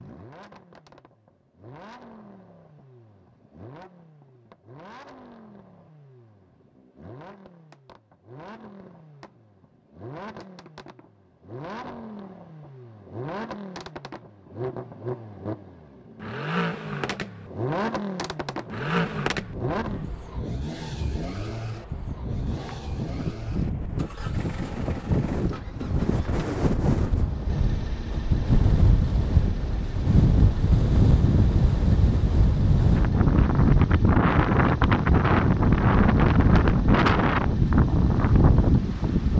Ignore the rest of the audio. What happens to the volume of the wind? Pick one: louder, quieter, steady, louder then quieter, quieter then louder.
louder.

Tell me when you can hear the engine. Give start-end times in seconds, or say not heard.
0.0-39.3.